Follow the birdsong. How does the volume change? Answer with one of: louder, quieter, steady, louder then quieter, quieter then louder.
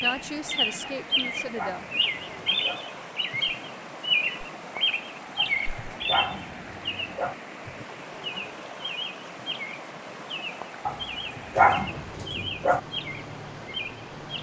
quieter.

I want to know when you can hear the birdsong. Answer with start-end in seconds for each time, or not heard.
0.0-14.3.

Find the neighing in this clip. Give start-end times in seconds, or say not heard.
not heard.